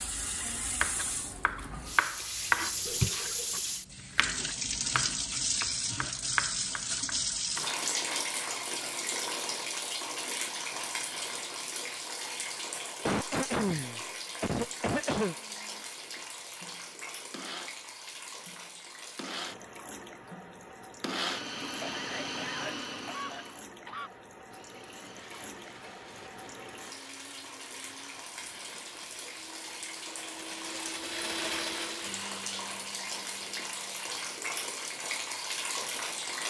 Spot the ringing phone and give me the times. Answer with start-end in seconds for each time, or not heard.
2.9-3.6.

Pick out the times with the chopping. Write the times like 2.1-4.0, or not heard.
0.6-7.7.